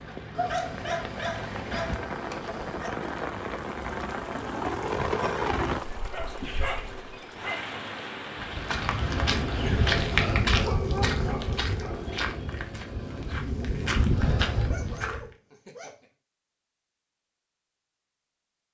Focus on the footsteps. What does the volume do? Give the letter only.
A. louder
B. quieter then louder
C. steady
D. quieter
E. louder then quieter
B.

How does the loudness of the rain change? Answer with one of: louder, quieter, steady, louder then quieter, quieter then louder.
louder then quieter.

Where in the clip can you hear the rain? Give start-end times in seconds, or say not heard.
0.0-10.2.